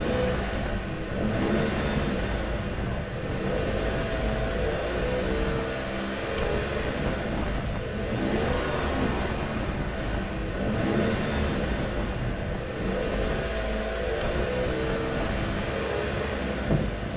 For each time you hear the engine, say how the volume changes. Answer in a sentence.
You can hear the engine from 0.0 to 17.1 s, at a steady volume.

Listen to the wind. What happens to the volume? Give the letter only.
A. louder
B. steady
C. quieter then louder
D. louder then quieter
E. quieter
B.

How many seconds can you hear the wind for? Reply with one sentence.
You can hear the wind for 17 seconds altogether.